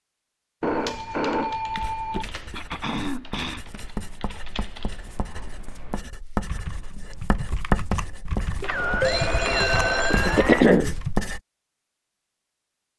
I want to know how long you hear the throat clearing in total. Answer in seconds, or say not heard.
2 s.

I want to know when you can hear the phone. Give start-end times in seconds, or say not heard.
0.6-2.2, 8.6-10.7.